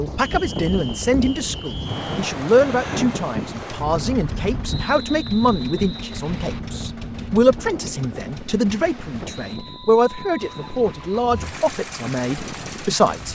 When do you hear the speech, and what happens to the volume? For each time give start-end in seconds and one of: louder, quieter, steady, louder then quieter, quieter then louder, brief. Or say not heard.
0.0-13.3 steady.